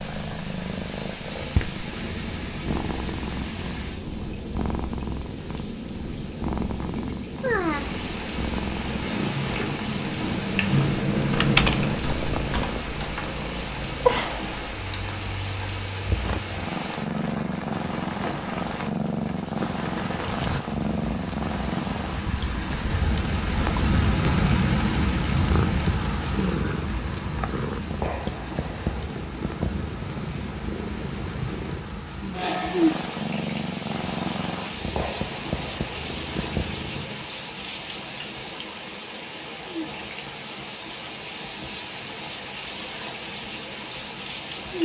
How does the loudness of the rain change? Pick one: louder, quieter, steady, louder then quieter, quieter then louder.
louder then quieter.